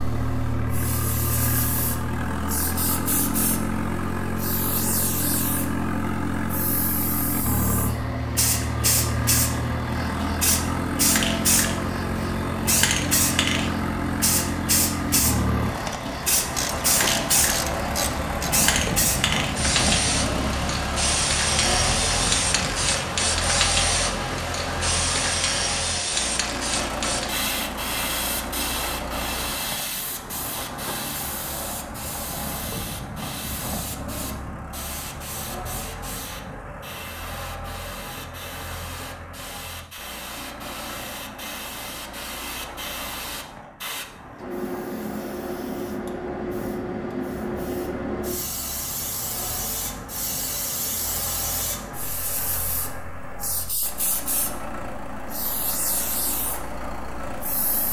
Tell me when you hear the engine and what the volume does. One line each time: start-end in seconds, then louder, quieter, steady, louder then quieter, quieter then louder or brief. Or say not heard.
0.0-57.8 quieter.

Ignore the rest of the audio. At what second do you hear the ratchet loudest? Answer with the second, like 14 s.
17 s.